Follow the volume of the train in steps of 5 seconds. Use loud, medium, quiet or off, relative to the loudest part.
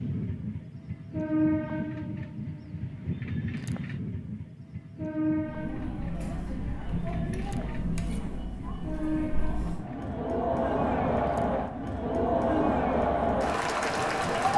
loud, loud, medium.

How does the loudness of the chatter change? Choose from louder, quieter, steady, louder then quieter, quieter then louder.
louder.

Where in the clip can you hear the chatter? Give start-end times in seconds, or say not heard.
5.3-14.5.